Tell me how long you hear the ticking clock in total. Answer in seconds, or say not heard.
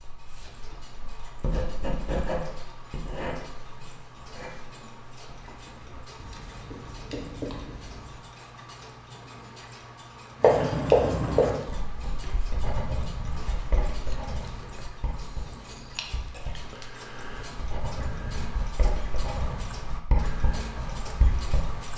22 s.